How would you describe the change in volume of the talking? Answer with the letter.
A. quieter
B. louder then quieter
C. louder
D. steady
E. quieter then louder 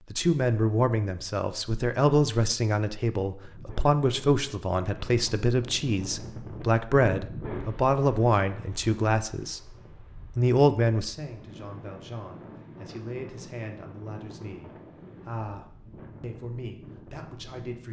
A.